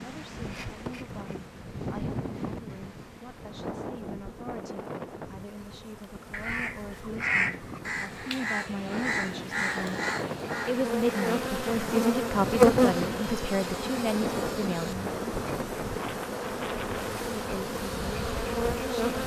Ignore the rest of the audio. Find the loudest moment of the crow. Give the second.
7 s.